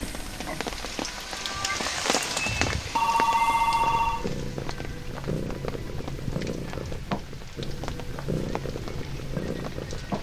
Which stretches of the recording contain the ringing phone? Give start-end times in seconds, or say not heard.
3.0-4.2.